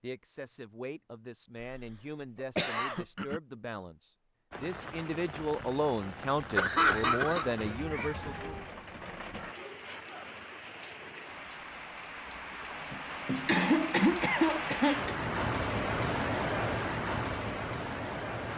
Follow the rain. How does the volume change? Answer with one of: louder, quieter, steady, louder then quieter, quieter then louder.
louder.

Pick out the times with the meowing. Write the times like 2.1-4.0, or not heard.
7.5-8.7.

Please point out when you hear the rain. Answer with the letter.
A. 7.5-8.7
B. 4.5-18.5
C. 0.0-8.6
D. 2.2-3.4
B.